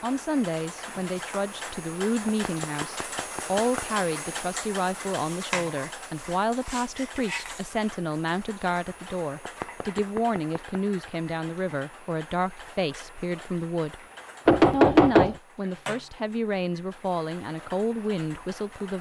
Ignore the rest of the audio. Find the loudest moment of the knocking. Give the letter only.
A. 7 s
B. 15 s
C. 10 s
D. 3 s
B.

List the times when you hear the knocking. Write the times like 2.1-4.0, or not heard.
2.2-3.9, 9.4-10.8, 14.4-15.3.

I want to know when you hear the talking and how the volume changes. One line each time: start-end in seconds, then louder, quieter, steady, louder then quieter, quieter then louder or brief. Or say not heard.
0.0-14.0 steady
14.7-18.9 steady.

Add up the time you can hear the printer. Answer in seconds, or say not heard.
not heard.